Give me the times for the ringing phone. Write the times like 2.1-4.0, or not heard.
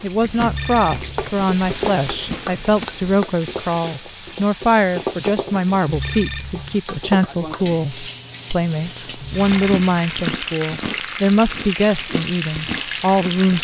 0.4-1.3, 5.8-6.8, 9.2-9.8.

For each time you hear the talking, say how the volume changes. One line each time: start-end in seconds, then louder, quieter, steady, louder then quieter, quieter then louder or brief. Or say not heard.
0.0-13.5 steady.